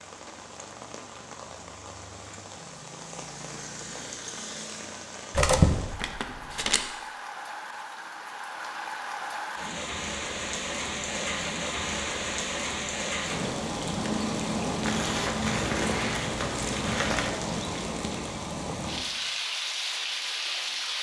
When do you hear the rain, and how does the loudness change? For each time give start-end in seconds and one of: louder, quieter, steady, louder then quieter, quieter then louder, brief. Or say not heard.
0.0-20.9 louder.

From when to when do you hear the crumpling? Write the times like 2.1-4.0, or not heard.
5.3-6.8, 14.8-17.4.